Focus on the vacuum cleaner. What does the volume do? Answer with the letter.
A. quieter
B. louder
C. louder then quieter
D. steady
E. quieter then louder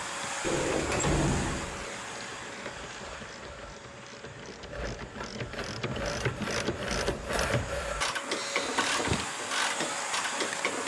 E.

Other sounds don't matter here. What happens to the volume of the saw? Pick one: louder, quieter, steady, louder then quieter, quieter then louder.
louder.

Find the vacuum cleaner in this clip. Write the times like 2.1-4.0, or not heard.
0.0-10.8.